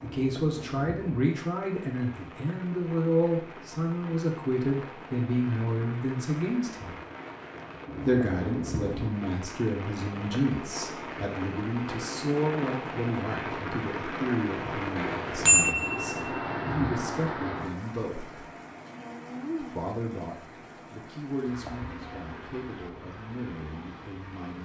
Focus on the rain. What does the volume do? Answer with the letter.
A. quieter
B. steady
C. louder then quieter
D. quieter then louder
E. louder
C.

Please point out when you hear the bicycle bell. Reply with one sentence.
The bicycle bell can be heard from 14.9 to 16.4 s.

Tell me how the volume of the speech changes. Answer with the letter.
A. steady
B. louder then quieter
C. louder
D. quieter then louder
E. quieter
E.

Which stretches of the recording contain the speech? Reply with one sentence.
You can hear the speech from 0.0 to 7.0 s, from 8.1 to 18.4 s and from 19.6 to 24.6 s.